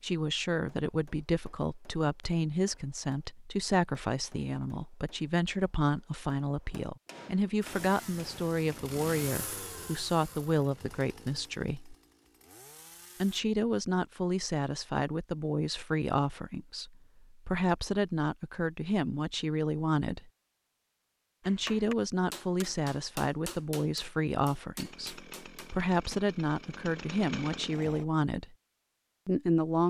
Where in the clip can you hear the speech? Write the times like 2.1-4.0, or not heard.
0.0-11.9, 13.2-20.3, 21.4-28.6, 29.2-29.8.